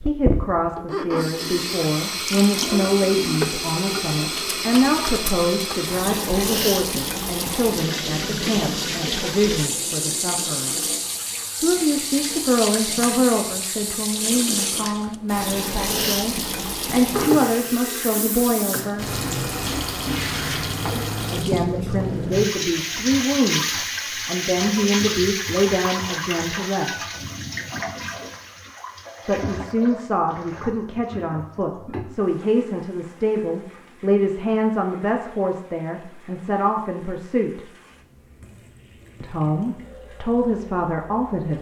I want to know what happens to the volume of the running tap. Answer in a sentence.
The loudness of the running tap goes down.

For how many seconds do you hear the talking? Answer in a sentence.
The talking can be heard for 35 seconds in total.